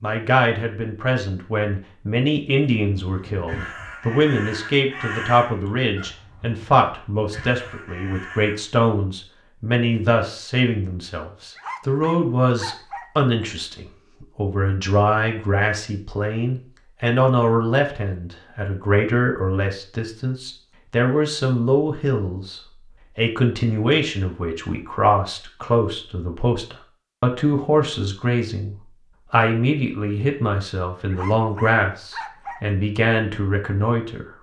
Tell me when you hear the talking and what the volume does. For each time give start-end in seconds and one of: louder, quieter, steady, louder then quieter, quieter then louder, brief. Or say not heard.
0.0-34.2 steady.